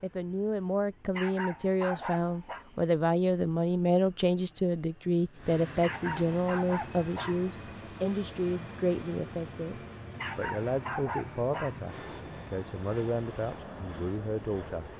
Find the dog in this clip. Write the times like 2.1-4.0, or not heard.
1.1-2.6, 5.8-7.5, 10.2-11.8.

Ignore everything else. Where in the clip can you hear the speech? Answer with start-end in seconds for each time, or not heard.
0.0-14.9.